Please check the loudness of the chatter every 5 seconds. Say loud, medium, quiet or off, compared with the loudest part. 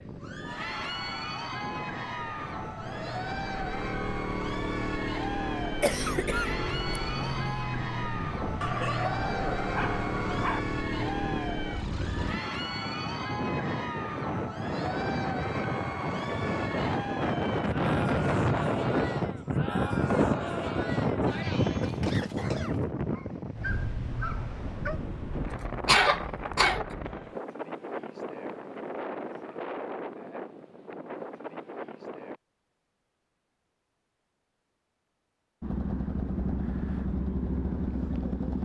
loud, loud, loud, loud, loud, off, off, off.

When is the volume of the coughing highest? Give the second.
26 s.